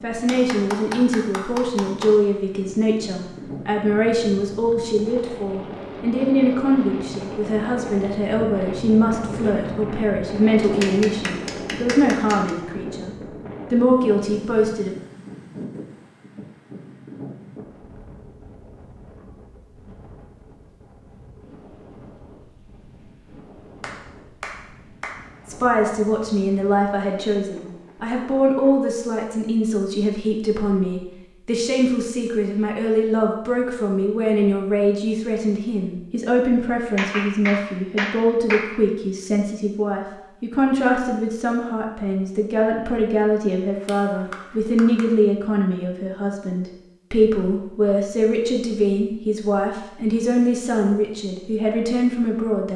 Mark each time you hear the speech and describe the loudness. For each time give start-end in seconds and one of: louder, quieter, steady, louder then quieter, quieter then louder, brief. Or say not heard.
0.0-14.9 steady
25.4-52.7 steady.